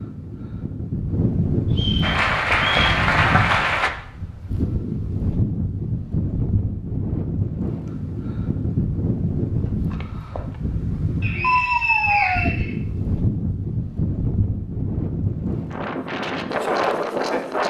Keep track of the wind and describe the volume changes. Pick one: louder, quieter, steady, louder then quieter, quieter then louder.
steady.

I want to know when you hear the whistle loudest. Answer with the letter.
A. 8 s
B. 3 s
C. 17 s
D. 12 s
D.